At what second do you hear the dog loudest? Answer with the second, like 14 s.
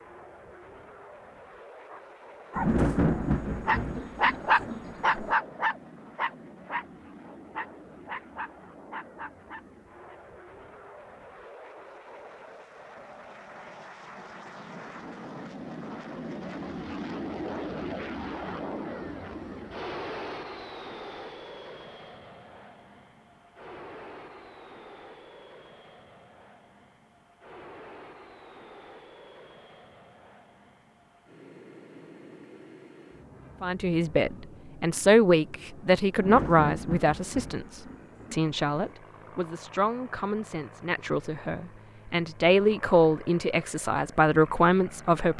4 s.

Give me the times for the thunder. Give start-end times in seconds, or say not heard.
2.5-5.3, 36.1-39.0.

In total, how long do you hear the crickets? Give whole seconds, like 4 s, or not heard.
not heard.